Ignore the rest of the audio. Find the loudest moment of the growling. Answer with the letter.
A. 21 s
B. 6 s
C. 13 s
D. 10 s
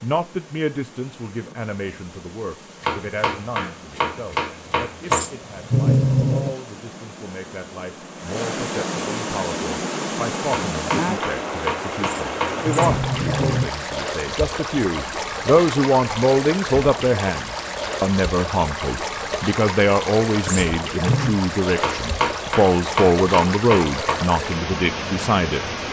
B.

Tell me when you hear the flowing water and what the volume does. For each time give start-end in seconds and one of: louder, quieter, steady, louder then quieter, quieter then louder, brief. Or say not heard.
0.0-25.8 louder.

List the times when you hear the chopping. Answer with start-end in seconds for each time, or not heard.
2.8-5.3, 10.4-13.0, 21.8-24.2.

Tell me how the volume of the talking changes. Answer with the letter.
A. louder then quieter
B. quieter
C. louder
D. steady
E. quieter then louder
C.